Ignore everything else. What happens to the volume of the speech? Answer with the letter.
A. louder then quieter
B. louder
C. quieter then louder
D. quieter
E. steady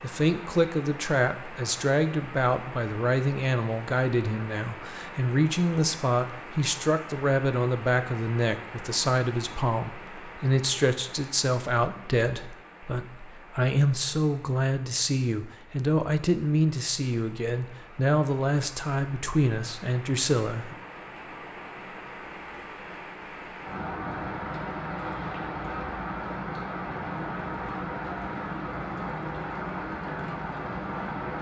E.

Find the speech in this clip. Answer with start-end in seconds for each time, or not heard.
0.0-20.8.